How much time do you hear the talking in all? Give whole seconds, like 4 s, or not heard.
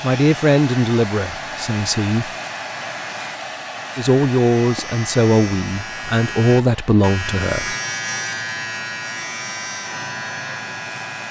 6 s.